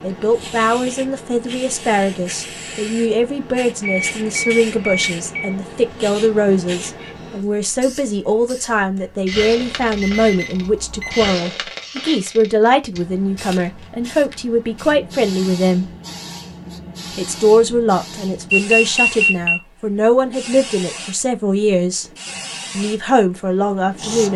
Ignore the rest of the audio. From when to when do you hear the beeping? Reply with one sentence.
The beeping can be heard from 3.8 to 5.5 s, from 9.3 to 11.3 s and from 18.5 to 19.6 s.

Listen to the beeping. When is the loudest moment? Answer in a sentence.
The volume of the beeping peaks at 19 seconds.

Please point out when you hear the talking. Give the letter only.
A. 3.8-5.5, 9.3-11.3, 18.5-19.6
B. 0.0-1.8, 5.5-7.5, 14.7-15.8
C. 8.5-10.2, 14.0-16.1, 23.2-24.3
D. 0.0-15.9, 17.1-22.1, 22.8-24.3
D.